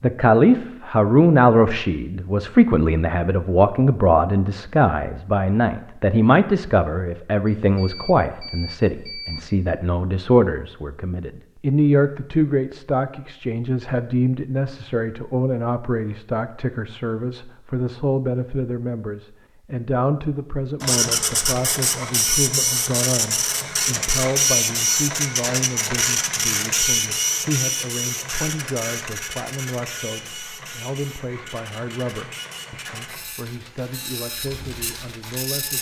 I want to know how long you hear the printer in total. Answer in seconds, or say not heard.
15 s.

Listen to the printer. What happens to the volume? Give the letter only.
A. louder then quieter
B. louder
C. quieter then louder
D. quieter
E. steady
D.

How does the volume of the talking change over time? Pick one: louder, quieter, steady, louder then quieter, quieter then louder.
quieter.